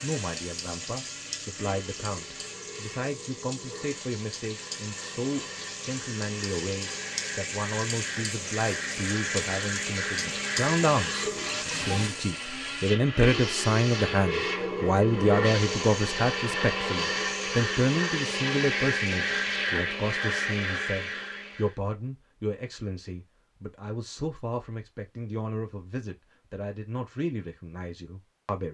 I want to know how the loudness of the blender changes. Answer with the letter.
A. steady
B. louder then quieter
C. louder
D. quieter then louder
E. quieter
C.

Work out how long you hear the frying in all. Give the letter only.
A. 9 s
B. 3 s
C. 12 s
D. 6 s
C.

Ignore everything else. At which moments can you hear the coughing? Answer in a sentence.
The coughing can't be heard in this clip.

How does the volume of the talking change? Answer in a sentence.
The volume of the talking goes up, then down.